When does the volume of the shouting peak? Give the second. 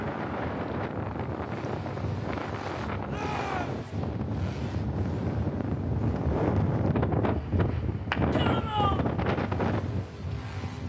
9 s.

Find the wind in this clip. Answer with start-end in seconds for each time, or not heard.
0.0-10.8.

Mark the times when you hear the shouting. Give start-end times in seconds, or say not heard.
3.0-3.9, 8.3-9.0.